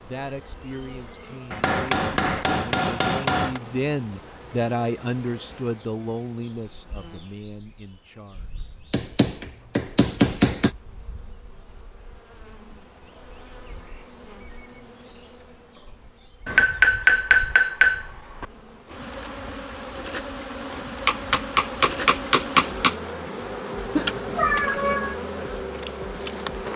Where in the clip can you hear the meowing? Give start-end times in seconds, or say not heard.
23.9-25.1.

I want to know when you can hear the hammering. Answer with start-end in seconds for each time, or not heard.
1.5-3.6, 8.9-10.7, 16.4-18.4, 21.1-22.9.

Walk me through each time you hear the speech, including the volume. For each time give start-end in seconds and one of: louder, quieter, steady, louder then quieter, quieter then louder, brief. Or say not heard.
0.0-8.6 louder then quieter.